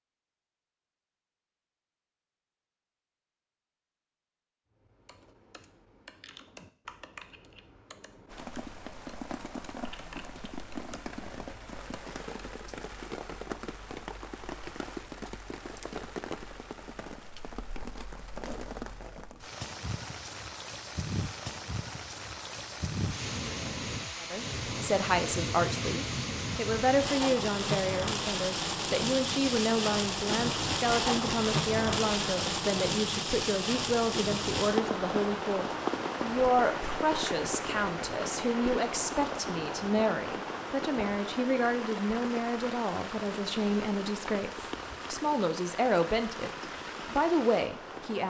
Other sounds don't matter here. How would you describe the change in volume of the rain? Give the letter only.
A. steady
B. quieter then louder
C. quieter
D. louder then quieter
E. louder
D.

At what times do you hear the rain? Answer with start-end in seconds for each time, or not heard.
8.2-48.2.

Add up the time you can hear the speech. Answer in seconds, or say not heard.
24 s.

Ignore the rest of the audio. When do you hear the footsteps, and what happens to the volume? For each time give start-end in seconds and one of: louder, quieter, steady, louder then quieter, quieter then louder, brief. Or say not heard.
not heard.